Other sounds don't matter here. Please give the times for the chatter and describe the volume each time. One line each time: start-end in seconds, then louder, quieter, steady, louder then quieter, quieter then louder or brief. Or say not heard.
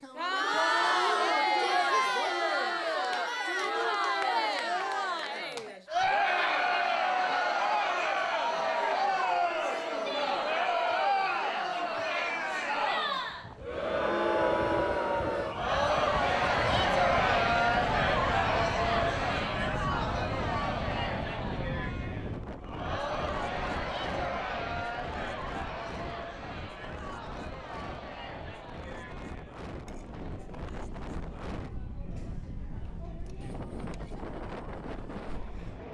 0.0-35.8 quieter.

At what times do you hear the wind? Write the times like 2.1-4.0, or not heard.
13.2-35.8.